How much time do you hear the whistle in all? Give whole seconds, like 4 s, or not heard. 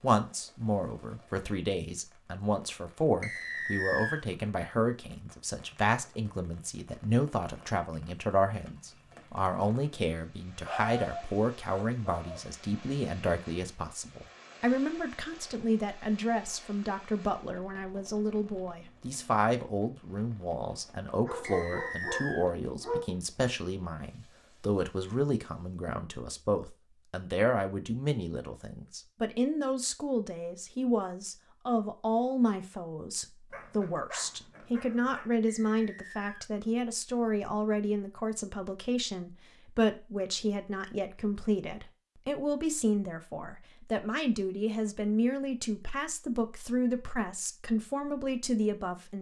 3 s.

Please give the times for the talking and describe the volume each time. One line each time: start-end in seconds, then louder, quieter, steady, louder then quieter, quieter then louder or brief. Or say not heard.
0.0-49.1 steady.